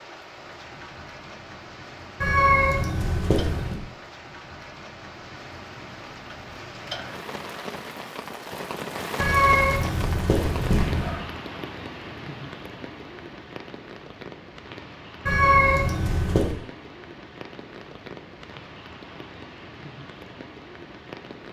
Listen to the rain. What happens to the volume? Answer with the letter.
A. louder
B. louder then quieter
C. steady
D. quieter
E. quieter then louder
B.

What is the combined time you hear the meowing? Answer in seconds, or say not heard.
5 s.